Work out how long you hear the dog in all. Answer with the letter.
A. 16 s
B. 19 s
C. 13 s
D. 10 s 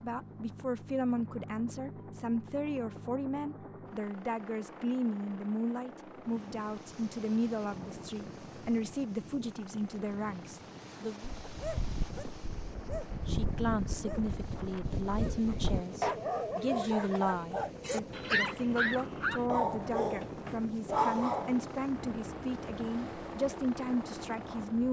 D.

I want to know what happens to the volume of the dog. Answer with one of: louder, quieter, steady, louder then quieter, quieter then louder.
louder.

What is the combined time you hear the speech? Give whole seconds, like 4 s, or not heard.
23 s.